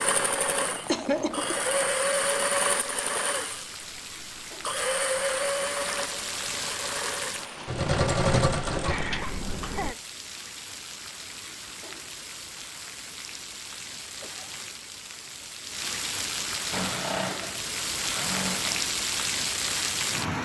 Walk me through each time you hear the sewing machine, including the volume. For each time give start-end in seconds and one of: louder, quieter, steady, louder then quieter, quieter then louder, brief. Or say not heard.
0.0-9.9 quieter then louder
16.7-18.9 brief.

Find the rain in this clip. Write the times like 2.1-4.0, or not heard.
0.0-20.3.